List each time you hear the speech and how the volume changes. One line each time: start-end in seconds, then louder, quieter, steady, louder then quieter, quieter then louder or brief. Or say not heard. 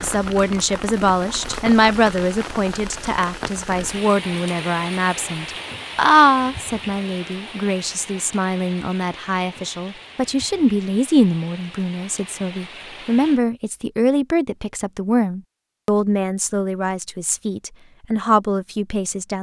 0.0-19.3 steady.